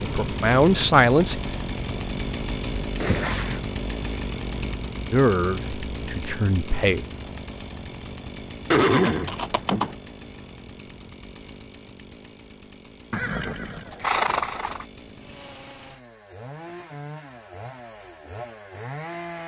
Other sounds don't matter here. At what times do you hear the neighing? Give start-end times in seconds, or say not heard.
3.0-3.6, 8.7-9.9, 13.1-14.8.